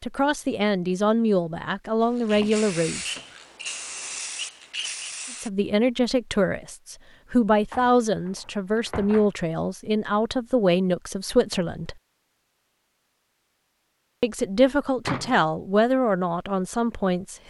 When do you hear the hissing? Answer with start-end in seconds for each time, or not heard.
2.0-5.5.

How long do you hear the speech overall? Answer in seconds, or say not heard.
13 s.